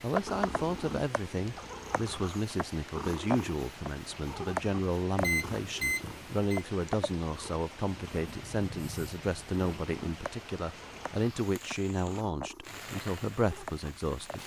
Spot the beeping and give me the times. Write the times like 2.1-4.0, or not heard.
5.2-6.7.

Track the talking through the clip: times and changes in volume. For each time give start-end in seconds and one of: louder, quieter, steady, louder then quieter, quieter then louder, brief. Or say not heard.
0.0-14.4 steady.